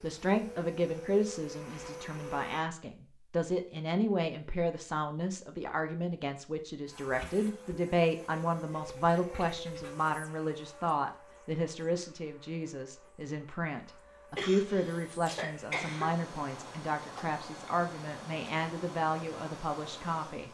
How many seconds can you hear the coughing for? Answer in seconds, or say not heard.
2 s.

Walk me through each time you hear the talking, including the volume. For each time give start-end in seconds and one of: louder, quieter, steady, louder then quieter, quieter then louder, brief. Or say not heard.
0.0-20.5 steady.